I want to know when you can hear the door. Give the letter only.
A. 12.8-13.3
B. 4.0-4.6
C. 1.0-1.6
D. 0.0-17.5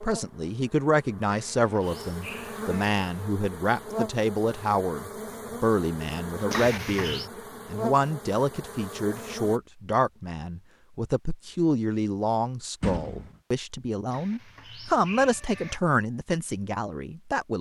A.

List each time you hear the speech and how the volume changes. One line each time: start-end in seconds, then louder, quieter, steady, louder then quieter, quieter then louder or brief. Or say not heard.
0.0-17.5 steady.